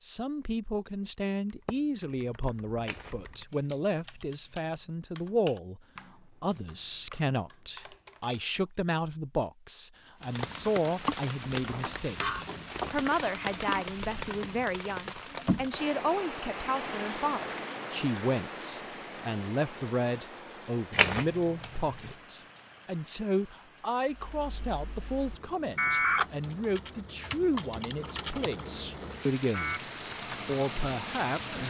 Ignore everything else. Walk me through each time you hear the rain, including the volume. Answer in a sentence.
You can hear the rain from 10.2 to 31.6 s, getting quieter then louder.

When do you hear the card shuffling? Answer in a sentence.
You can hear the card shuffling from 2.8 to 4.8 s and from 20.9 to 22.1 s.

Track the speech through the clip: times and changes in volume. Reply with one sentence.
The speech can be heard from 0.0 to 5.8 s, at a steady volume; from 6.4 to 29.8 s, at a steady volume; and briefly from 30.4 to 31.6 s.